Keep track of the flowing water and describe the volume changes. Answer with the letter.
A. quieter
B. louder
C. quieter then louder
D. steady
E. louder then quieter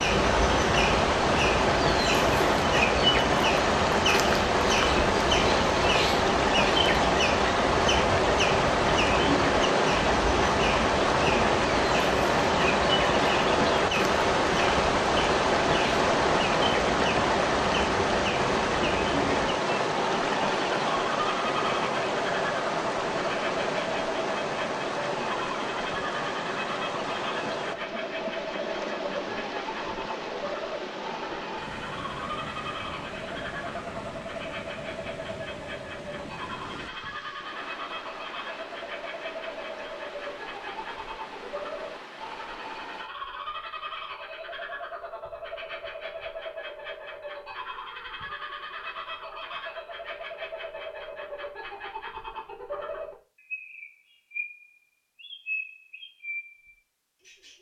A.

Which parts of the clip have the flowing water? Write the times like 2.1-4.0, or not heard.
0.0-43.1.